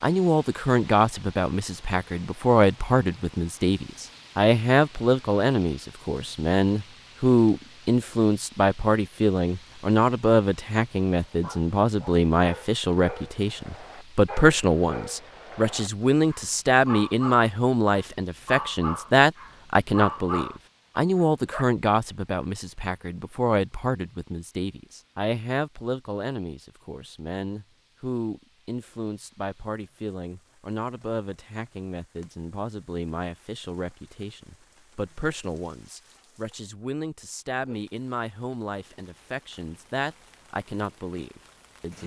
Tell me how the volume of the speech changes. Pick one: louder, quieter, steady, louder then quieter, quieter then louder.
quieter.